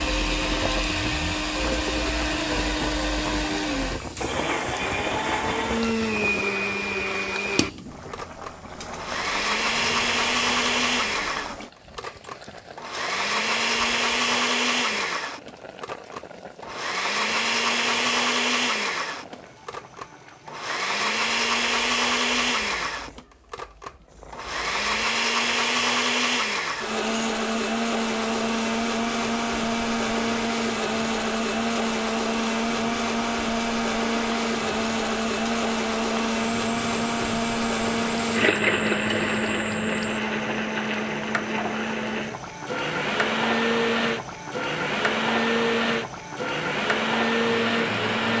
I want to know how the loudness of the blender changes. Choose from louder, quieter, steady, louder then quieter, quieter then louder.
steady.